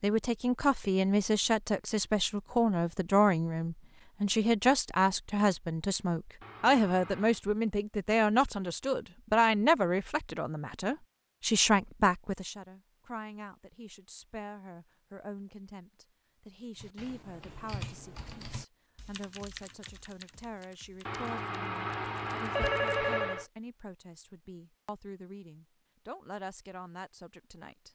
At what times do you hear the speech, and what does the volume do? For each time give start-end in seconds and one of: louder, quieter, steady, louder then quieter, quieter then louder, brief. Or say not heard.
0.0-27.9 quieter.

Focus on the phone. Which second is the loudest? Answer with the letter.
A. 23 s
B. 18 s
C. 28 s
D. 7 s
A.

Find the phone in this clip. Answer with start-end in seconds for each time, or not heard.
6.4-7.4, 21.1-23.4.